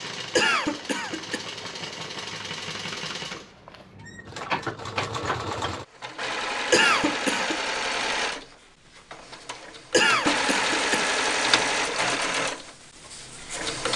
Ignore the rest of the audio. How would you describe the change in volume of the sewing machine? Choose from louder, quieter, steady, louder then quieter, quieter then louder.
louder.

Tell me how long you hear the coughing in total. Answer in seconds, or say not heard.
3 s.